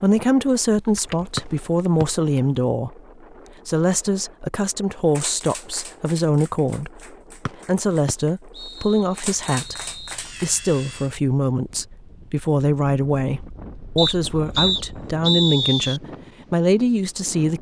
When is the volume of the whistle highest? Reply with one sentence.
The loudest moment of the whistle is at 15 seconds.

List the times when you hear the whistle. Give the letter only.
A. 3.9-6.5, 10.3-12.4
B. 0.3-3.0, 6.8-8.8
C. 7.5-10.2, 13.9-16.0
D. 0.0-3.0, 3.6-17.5
C.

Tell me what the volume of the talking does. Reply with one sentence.
The volume of the talking stays about the same.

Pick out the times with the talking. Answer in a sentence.
The talking can be heard from 0.0 to 3.0 s and from 3.6 to 17.5 s.